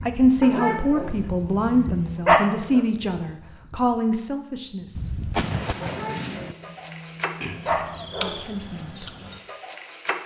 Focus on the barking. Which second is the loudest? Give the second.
2 s.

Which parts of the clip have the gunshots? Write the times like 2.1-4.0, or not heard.
4.9-6.5.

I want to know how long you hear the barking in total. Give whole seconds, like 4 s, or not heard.
5 s.